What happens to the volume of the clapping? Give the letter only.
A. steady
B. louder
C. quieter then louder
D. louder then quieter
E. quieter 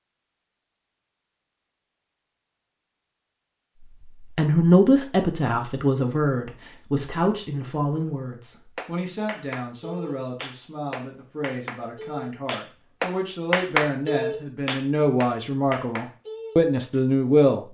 D.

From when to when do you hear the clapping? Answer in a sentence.
You can hear the clapping from 8.8 to 17.0 s.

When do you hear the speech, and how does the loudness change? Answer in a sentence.
The speech can be heard from 4.2 to 17.6 s, getting quieter then louder.